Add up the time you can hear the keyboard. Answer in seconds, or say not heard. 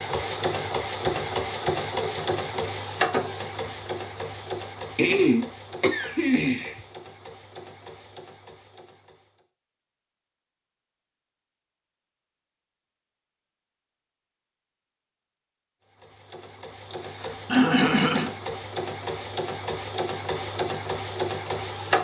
not heard.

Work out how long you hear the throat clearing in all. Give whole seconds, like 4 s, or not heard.
3 s.